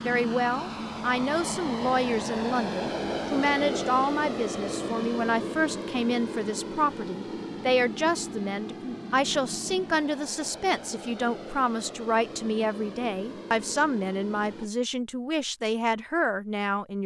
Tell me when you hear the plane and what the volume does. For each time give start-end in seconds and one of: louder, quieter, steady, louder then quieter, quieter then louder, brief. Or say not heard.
0.0-14.7 quieter.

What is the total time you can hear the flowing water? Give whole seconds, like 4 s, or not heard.
not heard.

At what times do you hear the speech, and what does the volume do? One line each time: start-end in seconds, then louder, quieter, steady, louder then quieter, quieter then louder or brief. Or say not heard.
0.0-17.0 steady.